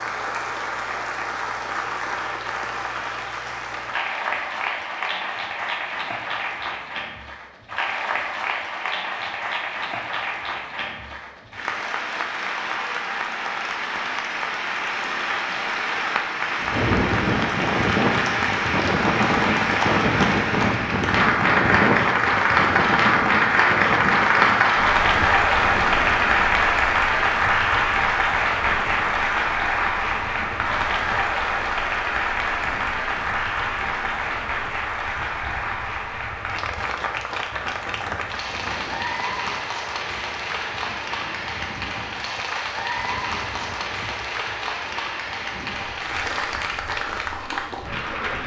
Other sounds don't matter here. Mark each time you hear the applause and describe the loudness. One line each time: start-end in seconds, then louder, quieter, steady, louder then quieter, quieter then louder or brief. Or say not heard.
0.0-48.4 louder then quieter.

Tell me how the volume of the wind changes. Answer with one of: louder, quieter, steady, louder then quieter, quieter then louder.
quieter.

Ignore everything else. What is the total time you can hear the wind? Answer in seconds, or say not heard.
32 s.